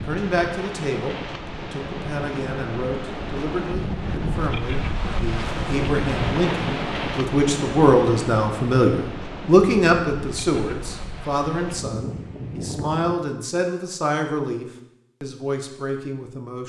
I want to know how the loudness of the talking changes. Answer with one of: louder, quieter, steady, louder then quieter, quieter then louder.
louder then quieter.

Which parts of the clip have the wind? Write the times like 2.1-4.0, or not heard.
0.0-13.2.